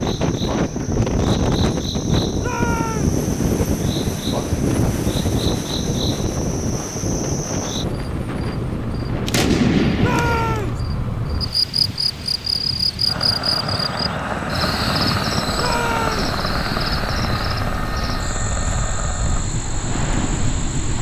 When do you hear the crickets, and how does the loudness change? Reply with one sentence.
The crickets can be heard from 0.0 to 20.9 s, getting louder then quieter.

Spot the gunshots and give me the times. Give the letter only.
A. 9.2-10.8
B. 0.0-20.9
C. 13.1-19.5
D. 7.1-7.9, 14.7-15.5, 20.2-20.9
A.